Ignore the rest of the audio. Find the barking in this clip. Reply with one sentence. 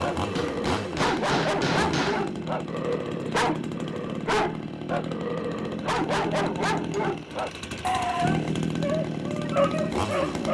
You can hear the barking from 0.0 to 10.4 s.